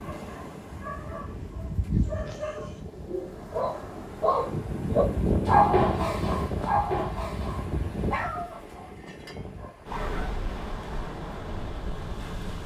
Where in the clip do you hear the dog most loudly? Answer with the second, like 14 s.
6 s.